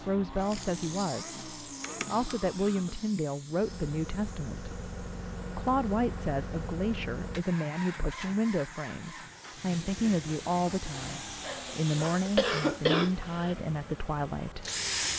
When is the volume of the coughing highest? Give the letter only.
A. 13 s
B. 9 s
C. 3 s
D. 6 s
A.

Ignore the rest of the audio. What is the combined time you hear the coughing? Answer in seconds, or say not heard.
3 s.